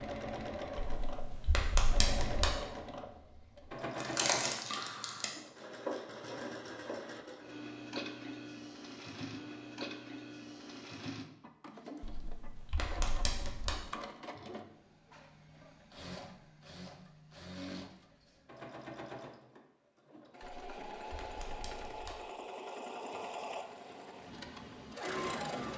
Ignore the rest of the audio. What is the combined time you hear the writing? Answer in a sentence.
The writing can't be heard in this clip.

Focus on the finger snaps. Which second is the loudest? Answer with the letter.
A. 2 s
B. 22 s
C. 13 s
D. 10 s
A.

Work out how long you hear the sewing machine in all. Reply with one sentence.
You can hear the sewing machine for 26 seconds altogether.